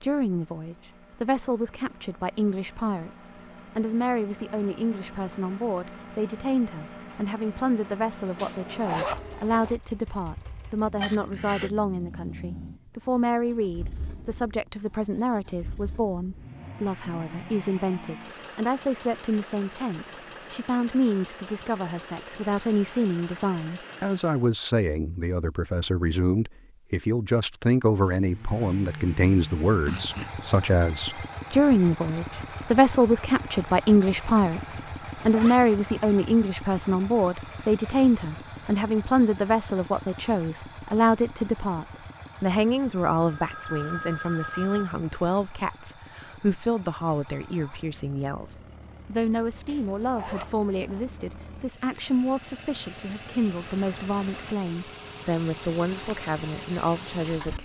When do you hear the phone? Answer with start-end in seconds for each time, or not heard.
11.0-11.7, 29.8-31.3, 43.2-44.9.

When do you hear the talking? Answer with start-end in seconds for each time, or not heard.
0.0-57.5.